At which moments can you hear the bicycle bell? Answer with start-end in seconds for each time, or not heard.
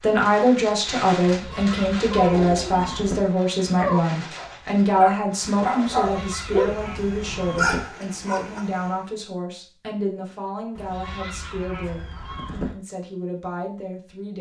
not heard.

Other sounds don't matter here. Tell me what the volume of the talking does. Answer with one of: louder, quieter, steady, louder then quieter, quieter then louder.
quieter.